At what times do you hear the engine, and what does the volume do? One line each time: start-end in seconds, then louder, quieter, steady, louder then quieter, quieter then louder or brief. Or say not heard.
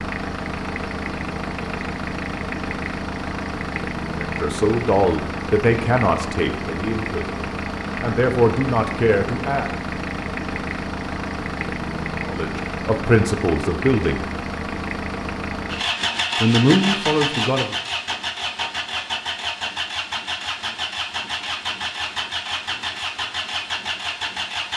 0.0-24.7 steady.